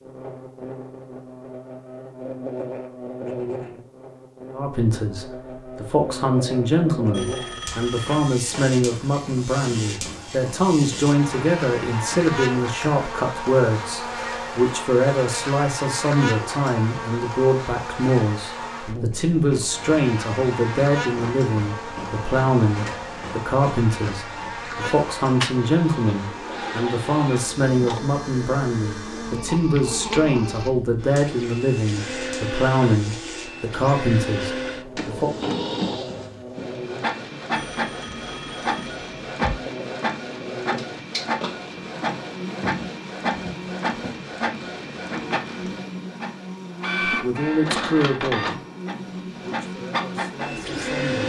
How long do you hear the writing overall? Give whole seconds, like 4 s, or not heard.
not heard.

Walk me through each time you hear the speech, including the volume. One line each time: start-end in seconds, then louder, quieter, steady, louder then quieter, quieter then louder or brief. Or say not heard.
4.5-35.3 steady
47.0-48.6 brief
49.4-51.2 brief.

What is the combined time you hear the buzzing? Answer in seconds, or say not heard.
51 s.